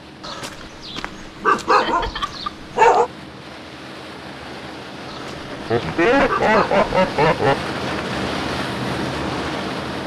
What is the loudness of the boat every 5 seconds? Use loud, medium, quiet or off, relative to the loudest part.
medium, loud.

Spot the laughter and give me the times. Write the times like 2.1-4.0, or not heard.
1.6-2.5, 5.7-7.6.